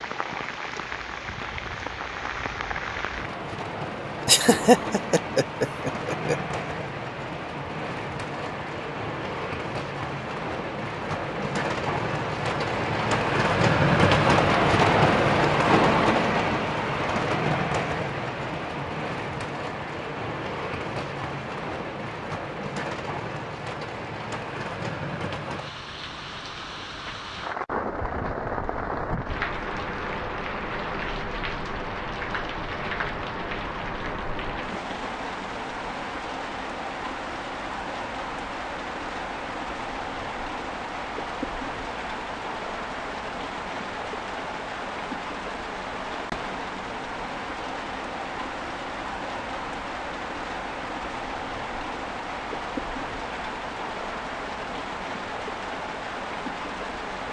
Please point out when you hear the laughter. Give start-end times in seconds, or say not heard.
4.2-6.3.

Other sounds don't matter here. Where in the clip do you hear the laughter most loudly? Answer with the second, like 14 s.
5 s.